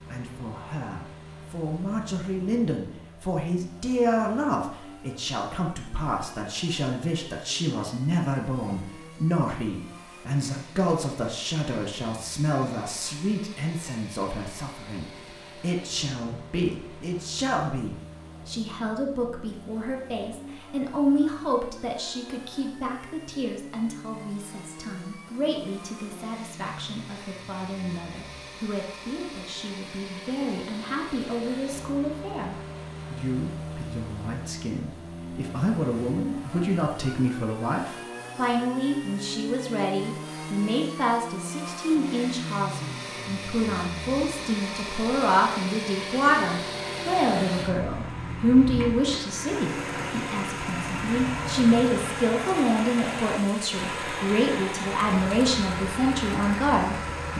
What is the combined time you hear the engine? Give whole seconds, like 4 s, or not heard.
57 s.